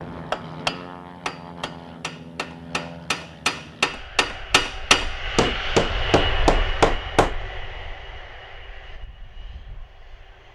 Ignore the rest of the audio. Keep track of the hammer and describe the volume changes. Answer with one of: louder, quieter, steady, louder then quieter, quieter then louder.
louder.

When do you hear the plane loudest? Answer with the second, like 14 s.
6 s.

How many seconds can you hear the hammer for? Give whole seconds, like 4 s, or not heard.
7 s.